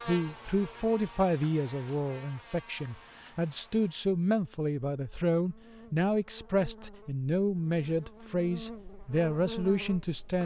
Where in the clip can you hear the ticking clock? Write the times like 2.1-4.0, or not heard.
not heard.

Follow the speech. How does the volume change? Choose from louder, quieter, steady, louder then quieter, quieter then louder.
steady.